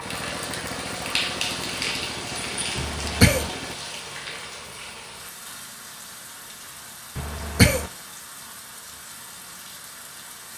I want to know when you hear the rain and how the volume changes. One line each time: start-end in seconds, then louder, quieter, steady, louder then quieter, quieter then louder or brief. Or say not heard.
0.0-10.5 quieter.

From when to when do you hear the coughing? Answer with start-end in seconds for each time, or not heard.
2.8-3.5, 7.2-7.9.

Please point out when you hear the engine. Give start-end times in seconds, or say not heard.
0.0-3.8.